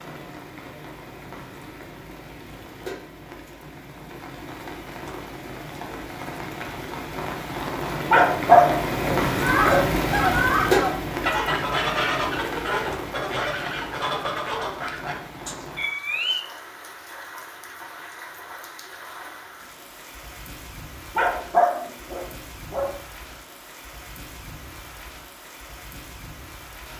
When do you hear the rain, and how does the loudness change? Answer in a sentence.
The rain can be heard from 0.0 to 26.9 s, getting louder then quieter.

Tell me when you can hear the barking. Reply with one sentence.
The barking can be heard from 8.1 to 9.9 s and from 21.1 to 22.9 s.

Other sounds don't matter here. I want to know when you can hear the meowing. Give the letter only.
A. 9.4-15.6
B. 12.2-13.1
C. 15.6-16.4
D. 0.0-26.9
C.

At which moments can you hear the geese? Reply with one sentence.
The geese can be heard from 9.4 to 15.6 s.